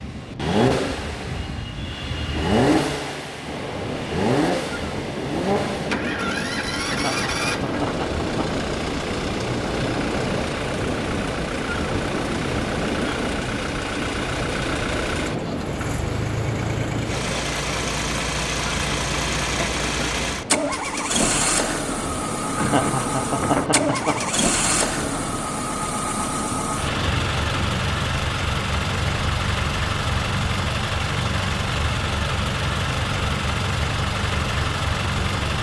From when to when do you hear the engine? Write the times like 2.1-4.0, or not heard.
0.0-35.5.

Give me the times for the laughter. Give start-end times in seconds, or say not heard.
6.8-8.5, 22.5-24.2.